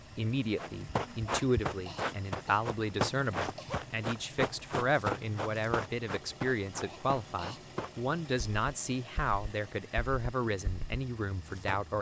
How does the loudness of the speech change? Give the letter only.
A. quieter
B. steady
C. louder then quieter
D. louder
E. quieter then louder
B.